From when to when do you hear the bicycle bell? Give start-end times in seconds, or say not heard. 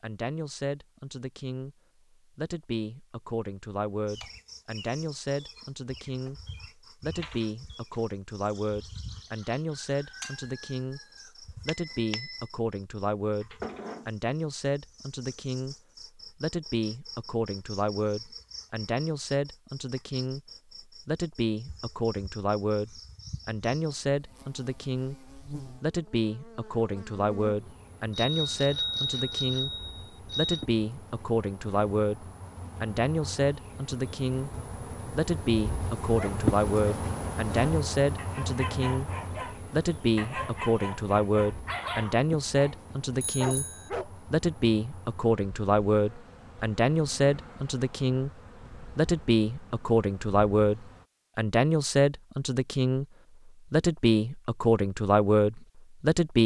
11.7-12.4, 28.1-30.6, 43.1-43.9.